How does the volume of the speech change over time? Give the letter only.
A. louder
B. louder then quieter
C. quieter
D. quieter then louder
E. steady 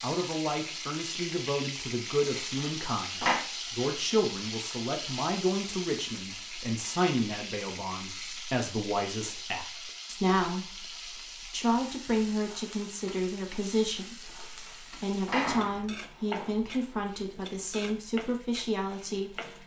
E.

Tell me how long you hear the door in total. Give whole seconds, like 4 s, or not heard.
3 s.